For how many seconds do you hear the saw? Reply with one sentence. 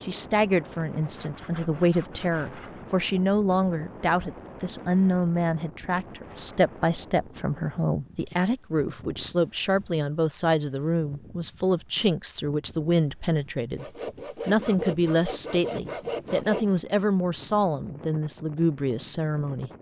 The saw can be heard for 5 seconds in total.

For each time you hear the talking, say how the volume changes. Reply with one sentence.
You can hear the talking from 0.0 to 13.8 s, at a steady volume; and from 14.4 to 19.7 s, at a steady volume.